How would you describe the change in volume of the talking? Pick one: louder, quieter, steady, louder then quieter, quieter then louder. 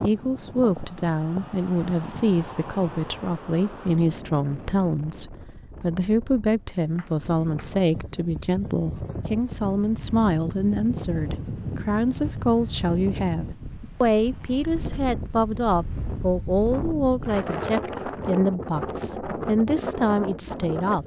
steady.